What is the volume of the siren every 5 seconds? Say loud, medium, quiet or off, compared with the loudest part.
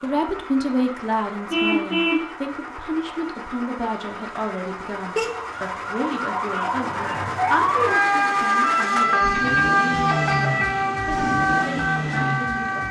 quiet, loud, loud.